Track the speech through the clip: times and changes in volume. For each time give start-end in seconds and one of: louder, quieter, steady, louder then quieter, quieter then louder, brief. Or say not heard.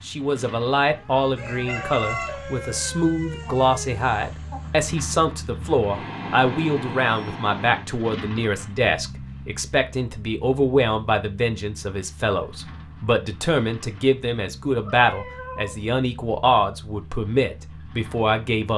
0.0-18.7 steady.